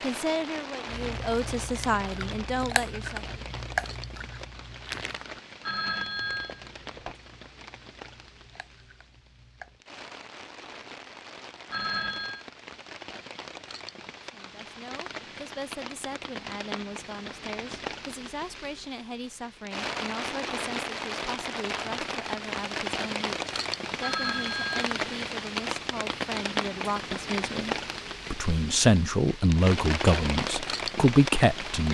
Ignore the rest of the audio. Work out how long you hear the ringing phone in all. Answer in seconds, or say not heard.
3 s.